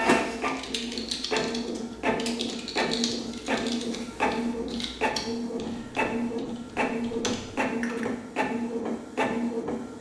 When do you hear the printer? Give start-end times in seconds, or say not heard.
0.0-9.9.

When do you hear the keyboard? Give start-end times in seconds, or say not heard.
0.0-8.1.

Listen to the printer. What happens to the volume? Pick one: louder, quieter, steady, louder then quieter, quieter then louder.
steady.